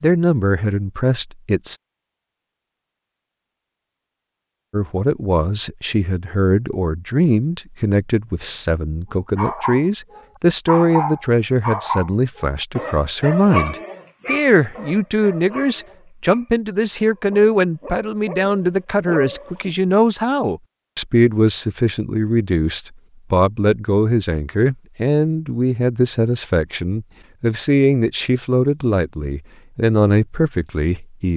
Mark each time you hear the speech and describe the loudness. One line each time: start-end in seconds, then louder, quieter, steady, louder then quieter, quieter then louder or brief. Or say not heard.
0.0-1.8 brief
4.7-31.3 steady.